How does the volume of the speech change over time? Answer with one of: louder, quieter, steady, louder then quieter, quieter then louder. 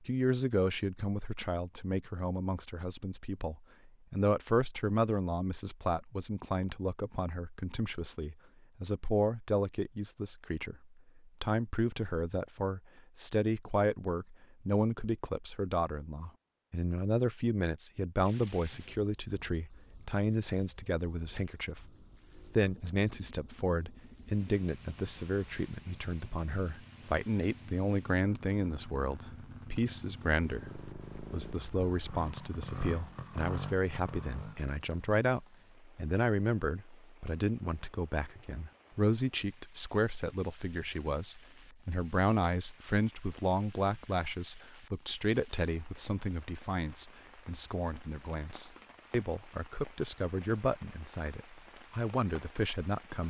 steady.